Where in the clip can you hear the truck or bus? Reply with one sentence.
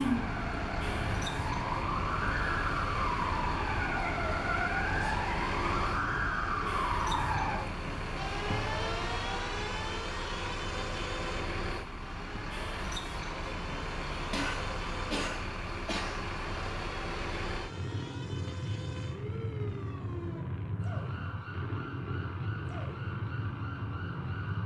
You can hear the truck or bus from 0.0 to 24.6 s.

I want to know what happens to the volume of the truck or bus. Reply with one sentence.
The volume of the truck or bus stays about the same.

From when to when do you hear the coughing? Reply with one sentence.
The coughing can be heard from 14.3 to 16.2 s.